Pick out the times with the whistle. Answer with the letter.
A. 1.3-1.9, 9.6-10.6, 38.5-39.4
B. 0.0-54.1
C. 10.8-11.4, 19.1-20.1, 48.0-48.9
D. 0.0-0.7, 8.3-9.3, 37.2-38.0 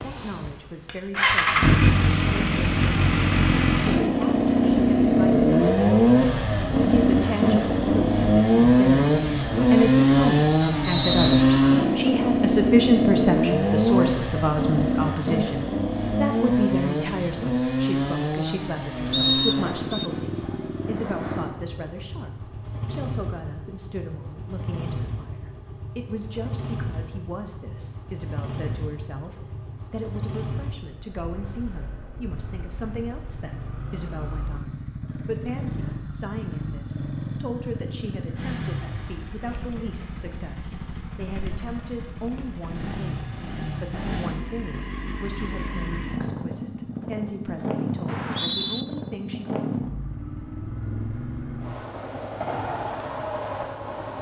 C.